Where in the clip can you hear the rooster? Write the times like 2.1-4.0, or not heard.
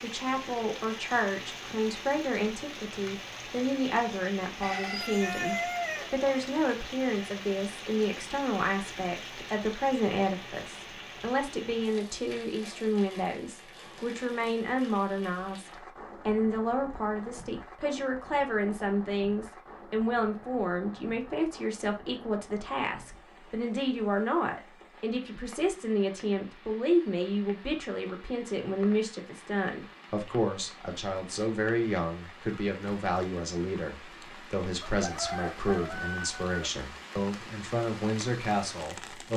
4.6-6.2, 34.8-36.7.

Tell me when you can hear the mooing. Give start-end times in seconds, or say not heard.
not heard.